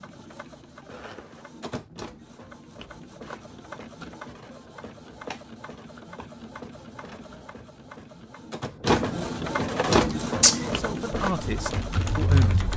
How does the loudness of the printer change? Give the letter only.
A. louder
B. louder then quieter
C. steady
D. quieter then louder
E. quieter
A.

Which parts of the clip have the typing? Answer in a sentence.
You can hear the typing from 10.1 to 12.7 s.